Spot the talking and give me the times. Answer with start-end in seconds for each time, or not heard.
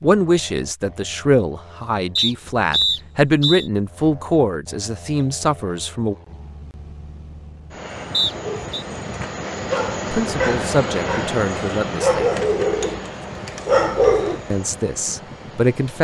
0.0-6.2, 10.1-12.3, 14.5-15.9.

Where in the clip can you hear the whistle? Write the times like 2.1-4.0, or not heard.
2.1-3.7, 8.1-8.8.